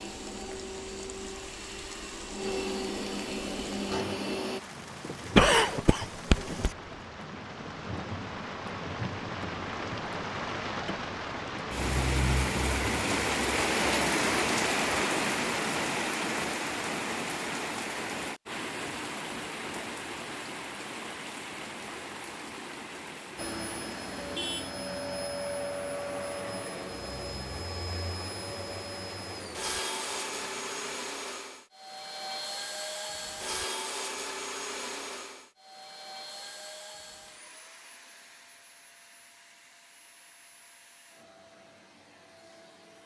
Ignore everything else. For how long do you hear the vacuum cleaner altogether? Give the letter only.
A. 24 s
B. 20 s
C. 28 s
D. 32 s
A.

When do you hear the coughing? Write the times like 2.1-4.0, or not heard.
5.3-6.7.